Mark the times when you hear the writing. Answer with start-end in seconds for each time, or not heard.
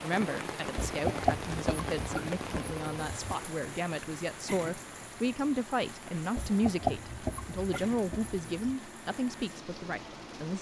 0.8-3.4, 6.3-8.8.